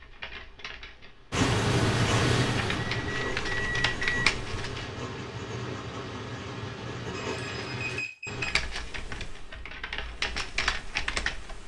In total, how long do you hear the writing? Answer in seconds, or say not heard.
7 s.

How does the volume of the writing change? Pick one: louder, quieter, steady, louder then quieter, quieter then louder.
quieter.